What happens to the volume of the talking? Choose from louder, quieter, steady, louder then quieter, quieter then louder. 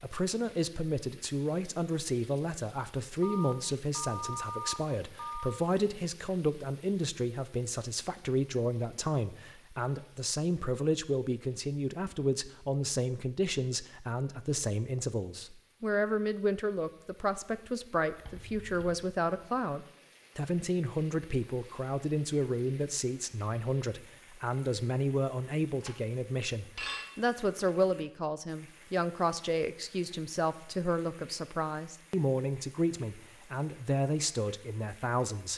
steady.